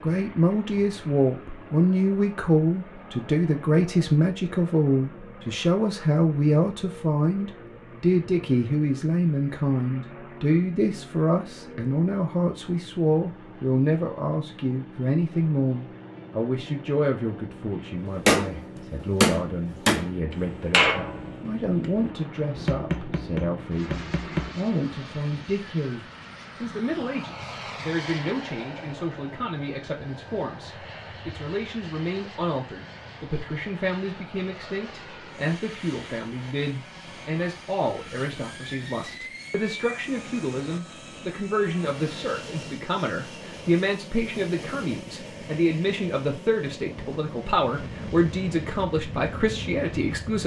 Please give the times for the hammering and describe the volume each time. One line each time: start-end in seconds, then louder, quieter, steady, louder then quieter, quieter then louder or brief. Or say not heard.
18.2-24.6 quieter.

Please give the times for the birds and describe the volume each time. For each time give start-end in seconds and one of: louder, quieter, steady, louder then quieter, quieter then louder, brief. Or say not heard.
not heard.